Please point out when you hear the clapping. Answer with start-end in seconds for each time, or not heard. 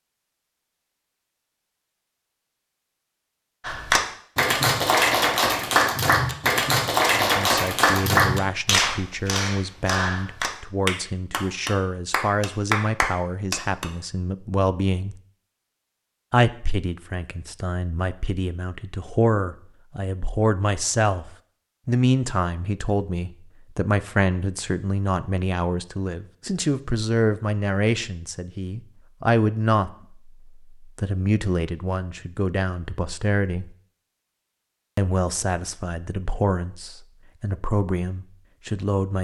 3.6-13.8.